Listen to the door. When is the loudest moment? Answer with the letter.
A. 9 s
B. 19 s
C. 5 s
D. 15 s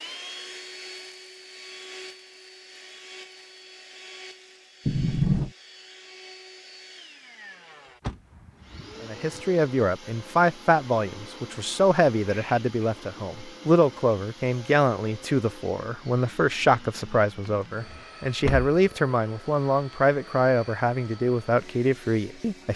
C.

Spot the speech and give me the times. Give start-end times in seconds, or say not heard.
9.0-22.7.